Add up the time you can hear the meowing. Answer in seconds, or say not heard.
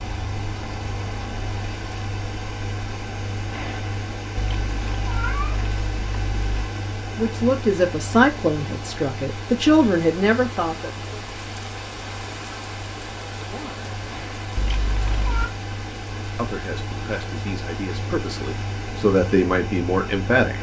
3 s.